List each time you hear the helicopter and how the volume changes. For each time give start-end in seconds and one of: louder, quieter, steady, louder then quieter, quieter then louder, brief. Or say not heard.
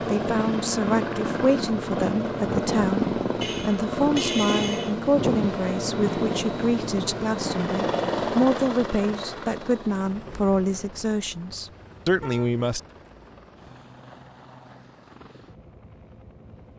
0.0-16.7 quieter.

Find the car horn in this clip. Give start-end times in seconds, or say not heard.
3.4-5.0, 11.5-12.5.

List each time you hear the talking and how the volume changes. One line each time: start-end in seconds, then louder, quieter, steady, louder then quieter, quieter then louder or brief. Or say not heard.
0.1-12.8 steady.